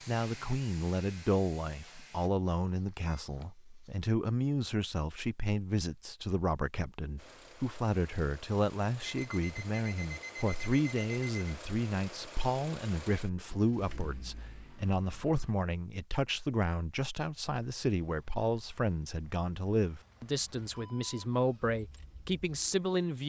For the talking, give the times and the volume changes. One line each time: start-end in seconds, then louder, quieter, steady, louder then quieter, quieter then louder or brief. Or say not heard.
0.1-23.2 steady.